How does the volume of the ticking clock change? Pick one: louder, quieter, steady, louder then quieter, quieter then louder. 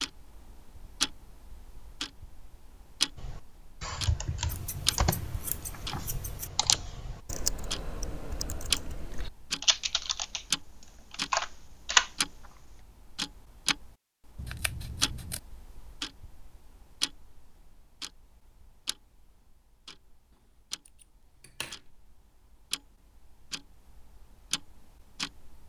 quieter.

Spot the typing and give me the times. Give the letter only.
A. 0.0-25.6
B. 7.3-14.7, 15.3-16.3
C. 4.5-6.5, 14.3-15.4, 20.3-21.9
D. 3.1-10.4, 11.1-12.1
D.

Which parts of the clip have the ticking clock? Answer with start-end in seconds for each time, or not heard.
0.0-25.6.